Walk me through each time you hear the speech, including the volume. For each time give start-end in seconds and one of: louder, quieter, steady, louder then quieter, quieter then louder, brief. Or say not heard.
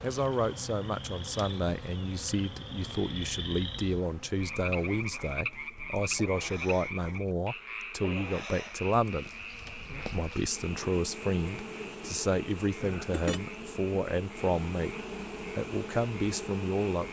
0.0-9.3 steady
10.0-17.0 steady.